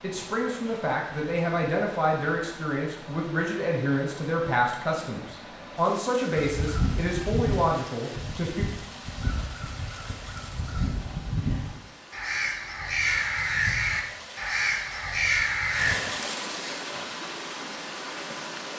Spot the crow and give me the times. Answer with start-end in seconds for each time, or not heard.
6.3-15.9.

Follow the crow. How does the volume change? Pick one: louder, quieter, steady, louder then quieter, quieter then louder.
quieter then louder.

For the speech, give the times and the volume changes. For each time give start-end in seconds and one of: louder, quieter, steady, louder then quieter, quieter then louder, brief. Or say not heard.
0.0-8.7 steady.